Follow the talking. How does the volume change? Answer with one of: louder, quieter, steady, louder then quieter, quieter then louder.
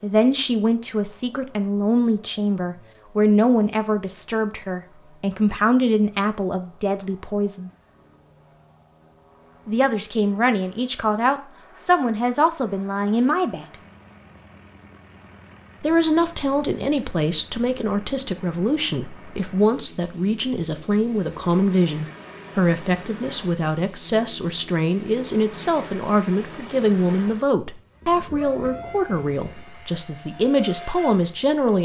steady.